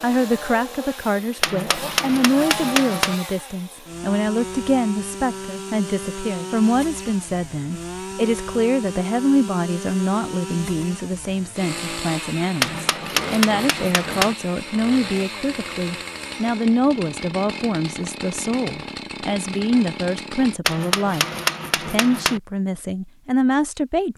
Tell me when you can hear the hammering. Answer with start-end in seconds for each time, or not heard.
1.4-3.1, 12.6-14.3, 20.6-22.4.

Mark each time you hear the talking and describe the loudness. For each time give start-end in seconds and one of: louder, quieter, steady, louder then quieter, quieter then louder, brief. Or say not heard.
0.0-21.2 steady
21.9-24.1 brief.